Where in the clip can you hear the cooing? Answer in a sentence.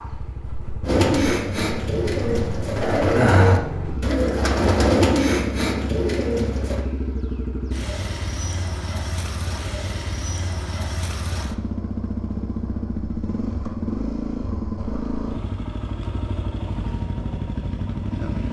You can hear the cooing from 0.8 to 6.8 s.